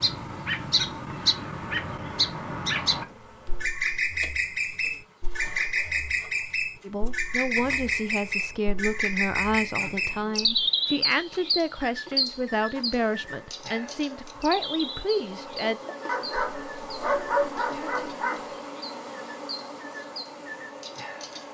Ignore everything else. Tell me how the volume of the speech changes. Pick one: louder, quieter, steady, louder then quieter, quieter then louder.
steady.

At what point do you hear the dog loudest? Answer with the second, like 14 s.
17 s.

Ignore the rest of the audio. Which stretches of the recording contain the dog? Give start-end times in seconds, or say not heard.
16.1-18.4.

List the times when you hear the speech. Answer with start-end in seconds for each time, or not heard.
6.8-15.8.